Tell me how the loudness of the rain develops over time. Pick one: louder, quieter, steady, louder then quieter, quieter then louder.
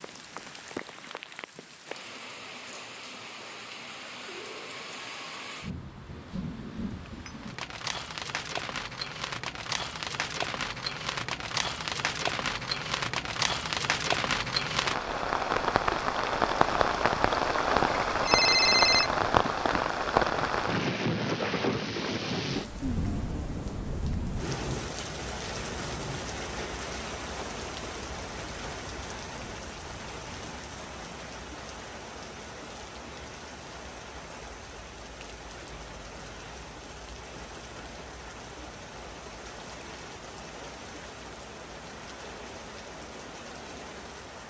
louder then quieter.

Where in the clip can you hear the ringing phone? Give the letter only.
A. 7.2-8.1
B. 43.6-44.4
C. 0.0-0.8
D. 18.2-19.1
D.